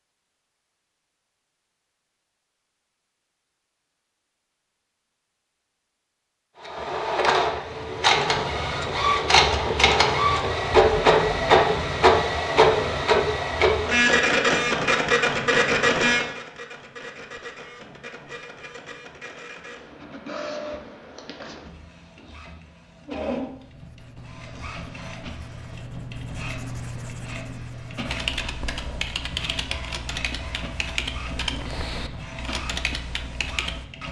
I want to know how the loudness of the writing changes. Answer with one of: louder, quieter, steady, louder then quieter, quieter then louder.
louder then quieter.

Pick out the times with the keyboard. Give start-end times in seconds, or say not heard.
28.1-33.9.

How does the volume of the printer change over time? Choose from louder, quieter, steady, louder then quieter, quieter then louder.
quieter.